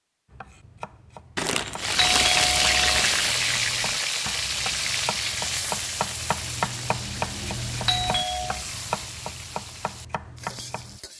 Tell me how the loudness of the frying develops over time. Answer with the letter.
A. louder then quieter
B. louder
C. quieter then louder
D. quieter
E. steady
D.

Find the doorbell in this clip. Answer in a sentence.
The doorbell can be heard from 1.9 to 3.0 s and from 7.8 to 8.6 s.